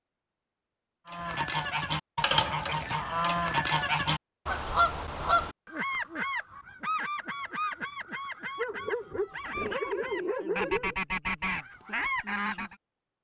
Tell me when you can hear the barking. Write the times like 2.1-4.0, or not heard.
8.6-10.9.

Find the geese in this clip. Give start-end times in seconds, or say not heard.
1.1-12.8.